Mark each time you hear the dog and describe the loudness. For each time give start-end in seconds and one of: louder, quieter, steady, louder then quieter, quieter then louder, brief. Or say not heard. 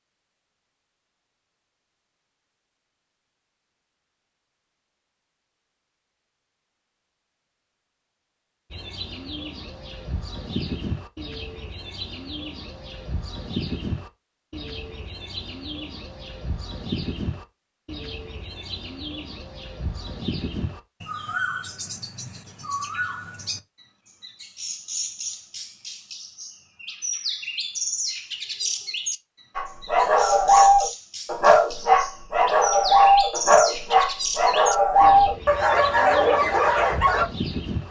29.6-37.2 steady.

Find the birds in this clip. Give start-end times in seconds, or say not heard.
8.7-37.8.